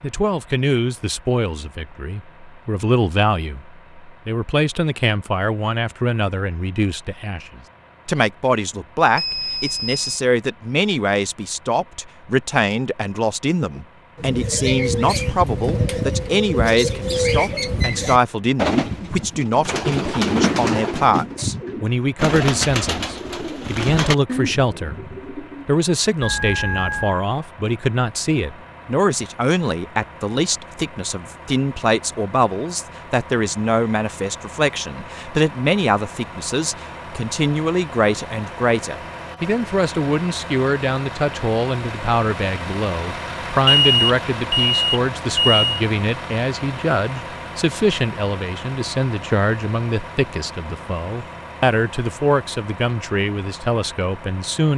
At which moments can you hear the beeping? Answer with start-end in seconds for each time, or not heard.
9.2-10.2, 26.2-27.2, 43.6-45.8.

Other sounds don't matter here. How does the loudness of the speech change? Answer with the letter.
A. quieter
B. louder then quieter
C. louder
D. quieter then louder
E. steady
E.